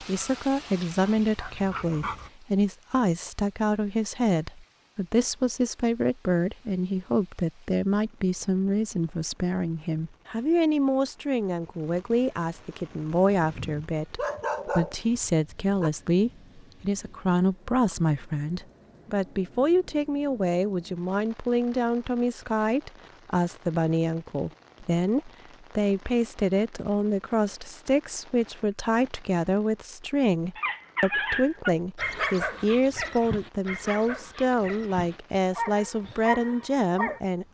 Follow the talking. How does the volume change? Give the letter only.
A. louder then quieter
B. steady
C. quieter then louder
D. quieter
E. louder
B.